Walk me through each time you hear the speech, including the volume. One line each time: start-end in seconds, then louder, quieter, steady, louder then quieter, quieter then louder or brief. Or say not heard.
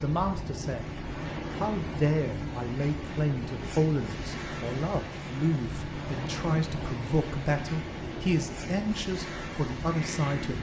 0.0-0.8 brief
1.6-10.5 steady.